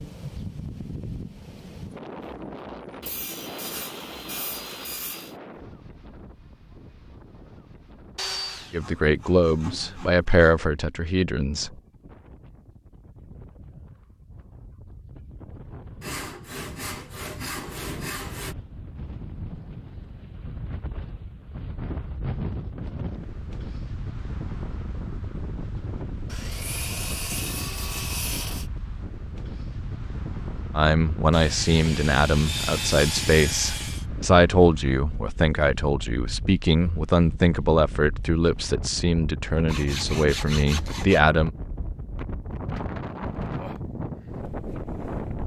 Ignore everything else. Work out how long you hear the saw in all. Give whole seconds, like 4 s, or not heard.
14 s.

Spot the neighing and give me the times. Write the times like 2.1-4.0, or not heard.
not heard.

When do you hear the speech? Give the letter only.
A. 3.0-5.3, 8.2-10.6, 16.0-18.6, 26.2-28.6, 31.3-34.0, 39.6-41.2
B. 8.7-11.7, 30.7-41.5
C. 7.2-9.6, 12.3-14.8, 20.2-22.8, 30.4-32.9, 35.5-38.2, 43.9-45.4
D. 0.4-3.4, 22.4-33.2
B.